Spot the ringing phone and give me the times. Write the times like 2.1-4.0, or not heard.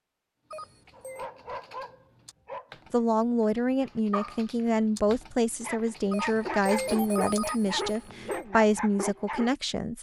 0.5-1.3, 6.1-8.4.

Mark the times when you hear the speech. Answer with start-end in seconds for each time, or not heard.
2.9-9.9.